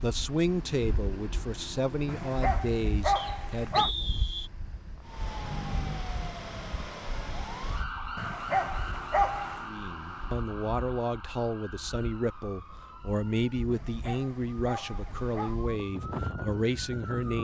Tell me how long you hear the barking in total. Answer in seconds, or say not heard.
5 s.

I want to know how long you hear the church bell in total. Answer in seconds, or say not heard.
not heard.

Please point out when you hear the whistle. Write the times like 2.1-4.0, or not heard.
3.1-4.5.